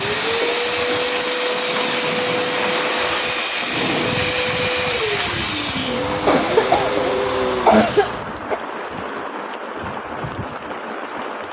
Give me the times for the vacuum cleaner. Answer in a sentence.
The vacuum cleaner can be heard from 0.0 to 8.2 s.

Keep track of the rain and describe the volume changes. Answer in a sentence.
The volume of the rain stays about the same.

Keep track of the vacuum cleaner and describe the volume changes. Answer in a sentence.
The loudness of the vacuum cleaner stays about the same.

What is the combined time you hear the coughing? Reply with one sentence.
You can hear the coughing for 2 seconds altogether.